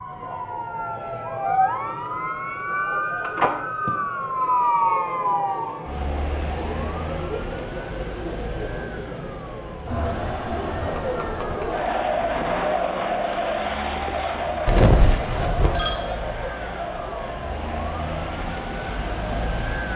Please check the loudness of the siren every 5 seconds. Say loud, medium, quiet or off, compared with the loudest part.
loud, medium, quiet, medium.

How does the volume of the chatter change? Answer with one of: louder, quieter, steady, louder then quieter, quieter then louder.
louder then quieter.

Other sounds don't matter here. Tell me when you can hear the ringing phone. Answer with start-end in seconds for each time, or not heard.
3.2-3.9, 14.7-16.1.